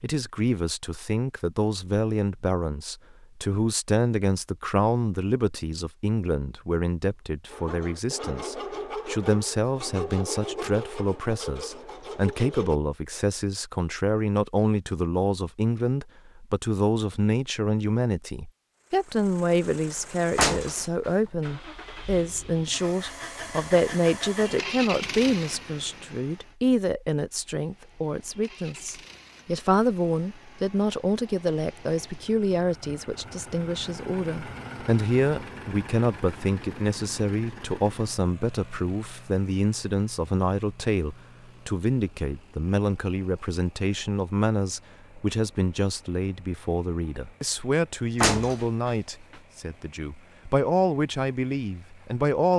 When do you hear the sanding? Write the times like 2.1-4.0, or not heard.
7.5-12.8.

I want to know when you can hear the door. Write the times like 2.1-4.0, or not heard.
20.4-21.1, 48.2-48.9.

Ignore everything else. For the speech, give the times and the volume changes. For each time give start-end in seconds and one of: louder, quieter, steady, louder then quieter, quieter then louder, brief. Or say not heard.
0.0-52.5 steady.